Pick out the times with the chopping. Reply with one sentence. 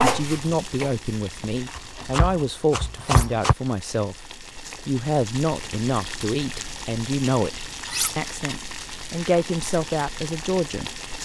You can hear the chopping from 0.0 to 3.5 s.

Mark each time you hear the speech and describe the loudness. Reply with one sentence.
You can hear the speech from 0.0 to 11.2 s, at a steady volume.